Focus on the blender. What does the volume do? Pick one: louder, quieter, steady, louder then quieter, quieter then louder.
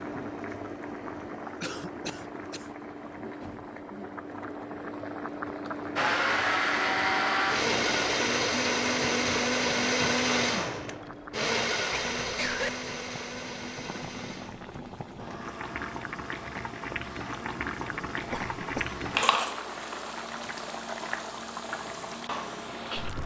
quieter.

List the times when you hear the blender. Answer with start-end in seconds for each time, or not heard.
6.0-23.2.